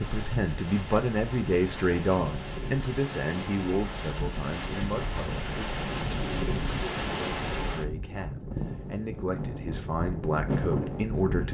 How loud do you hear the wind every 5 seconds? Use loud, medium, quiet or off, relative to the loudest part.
medium, loud, loud.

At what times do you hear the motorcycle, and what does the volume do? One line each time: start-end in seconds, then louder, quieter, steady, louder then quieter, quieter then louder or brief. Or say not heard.
not heard.